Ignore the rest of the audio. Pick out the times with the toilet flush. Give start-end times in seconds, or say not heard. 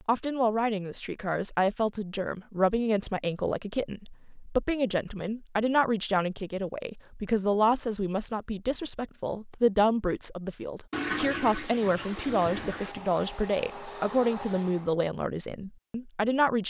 10.9-12.9.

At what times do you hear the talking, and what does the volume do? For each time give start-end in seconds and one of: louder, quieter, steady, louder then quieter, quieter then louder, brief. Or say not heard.
0.1-16.6 steady.